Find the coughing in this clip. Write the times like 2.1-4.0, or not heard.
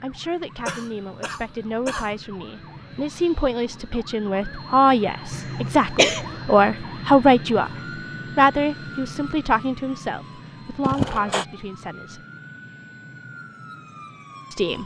0.7-2.1, 5.3-6.2, 10.8-11.4.